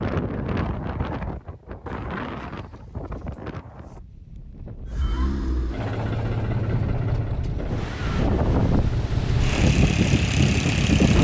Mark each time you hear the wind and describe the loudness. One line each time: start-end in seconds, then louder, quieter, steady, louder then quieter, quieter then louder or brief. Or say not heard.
0.0-11.1 quieter then louder.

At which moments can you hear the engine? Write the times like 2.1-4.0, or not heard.
4.8-11.1.